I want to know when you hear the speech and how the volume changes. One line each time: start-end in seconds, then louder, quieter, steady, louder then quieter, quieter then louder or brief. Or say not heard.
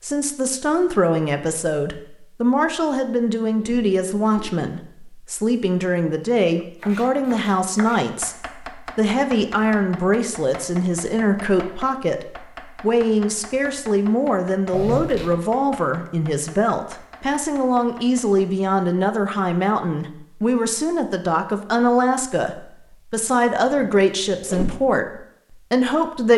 0.0-26.3 steady.